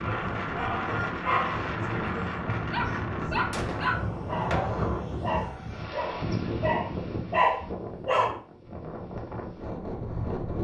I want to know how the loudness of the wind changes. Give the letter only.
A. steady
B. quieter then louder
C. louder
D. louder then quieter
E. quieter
E.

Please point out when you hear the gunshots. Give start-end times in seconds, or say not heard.
3.5-4.0.